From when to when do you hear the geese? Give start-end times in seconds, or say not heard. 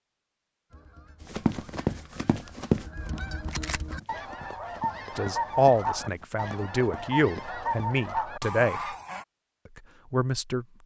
0.7-9.2.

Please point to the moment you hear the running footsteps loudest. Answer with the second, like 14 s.
3 s.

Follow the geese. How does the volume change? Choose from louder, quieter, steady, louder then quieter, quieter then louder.
louder.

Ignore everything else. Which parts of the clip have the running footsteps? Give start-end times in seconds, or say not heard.
1.2-7.9.